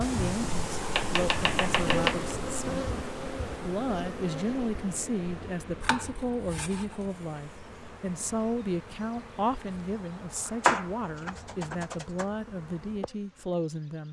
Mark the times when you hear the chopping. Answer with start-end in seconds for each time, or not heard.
0.1-2.4, 5.8-7.1, 10.4-12.2.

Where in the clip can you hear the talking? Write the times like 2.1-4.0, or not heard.
0.0-2.9, 3.5-14.0.